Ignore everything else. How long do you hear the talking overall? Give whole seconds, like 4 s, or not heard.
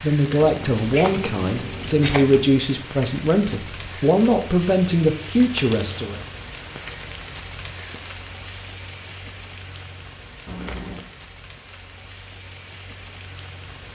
6 s.